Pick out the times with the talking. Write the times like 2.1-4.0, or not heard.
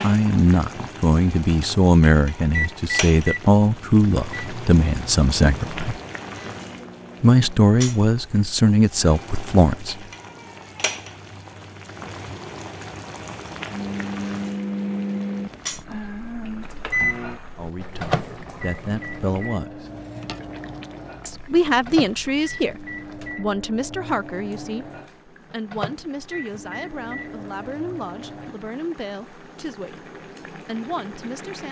0.0-6.0, 7.2-9.9, 17.6-19.9, 21.2-31.6.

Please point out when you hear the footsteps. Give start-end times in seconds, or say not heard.
not heard.